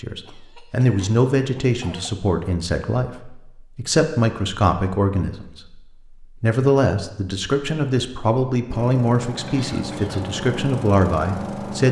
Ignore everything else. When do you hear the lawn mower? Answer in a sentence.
The lawn mower can be heard from 8.7 to 11.8 s.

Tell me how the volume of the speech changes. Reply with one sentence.
The loudness of the speech stays about the same.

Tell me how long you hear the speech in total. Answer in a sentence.
You can hear the speech for 12 seconds altogether.